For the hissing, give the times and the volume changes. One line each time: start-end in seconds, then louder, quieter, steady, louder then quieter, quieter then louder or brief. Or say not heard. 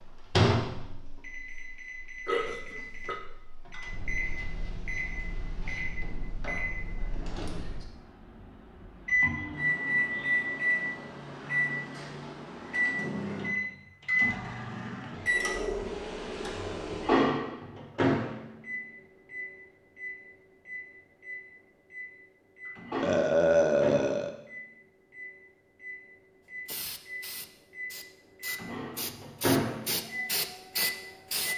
26.6-31.5 louder.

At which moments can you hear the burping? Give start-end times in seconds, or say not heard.
2.2-3.1, 23.0-24.3.